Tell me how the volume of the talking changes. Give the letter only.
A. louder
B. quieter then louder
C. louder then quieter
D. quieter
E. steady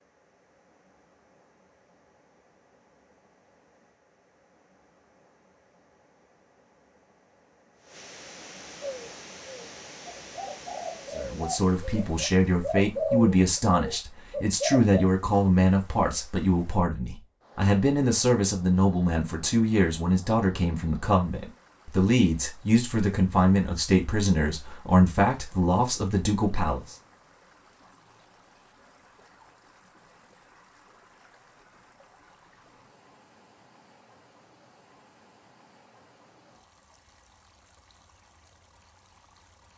E.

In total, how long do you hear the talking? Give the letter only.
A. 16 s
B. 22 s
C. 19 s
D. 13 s
A.